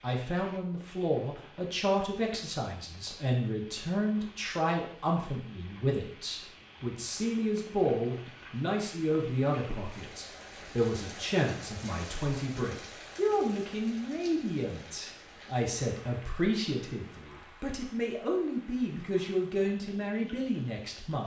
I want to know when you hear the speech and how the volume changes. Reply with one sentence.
You can hear the speech from 0.0 to 21.2 s, at a steady volume.